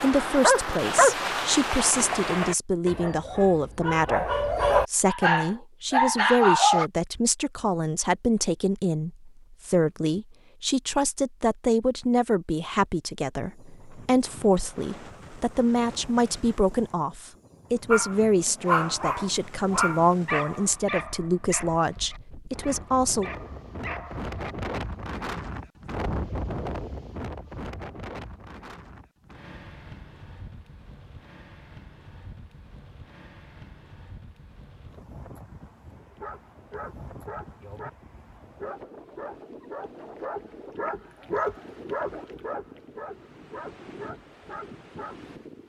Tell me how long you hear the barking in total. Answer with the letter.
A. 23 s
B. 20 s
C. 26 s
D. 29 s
A.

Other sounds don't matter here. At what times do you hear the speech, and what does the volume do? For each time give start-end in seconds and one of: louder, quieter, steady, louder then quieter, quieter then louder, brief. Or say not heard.
0.0-23.3 steady.